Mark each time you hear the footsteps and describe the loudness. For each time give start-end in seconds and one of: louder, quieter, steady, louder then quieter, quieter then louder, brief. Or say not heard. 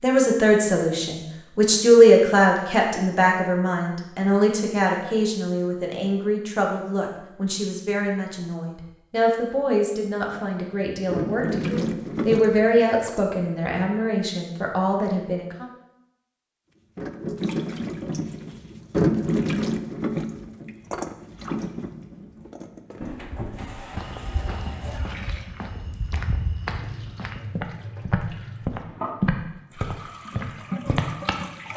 23.9-31.4 louder then quieter.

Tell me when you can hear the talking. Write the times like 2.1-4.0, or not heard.
0.0-15.7.